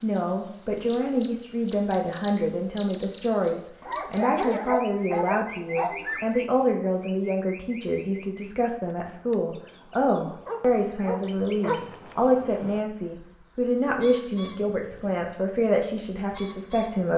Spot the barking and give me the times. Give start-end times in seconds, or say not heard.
3.8-6.3, 10.4-11.8.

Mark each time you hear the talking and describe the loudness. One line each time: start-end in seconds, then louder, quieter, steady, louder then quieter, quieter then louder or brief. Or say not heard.
0.0-17.1 steady.